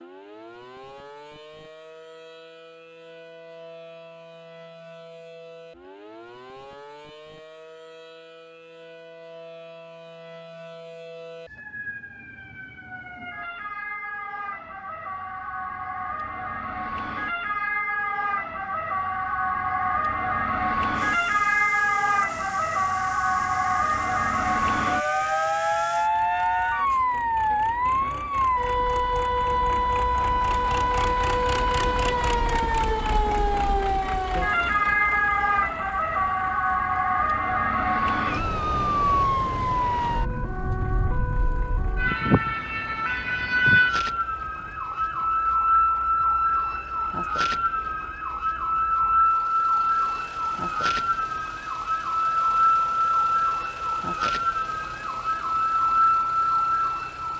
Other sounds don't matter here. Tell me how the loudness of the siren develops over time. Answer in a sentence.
The volume of the siren goes up.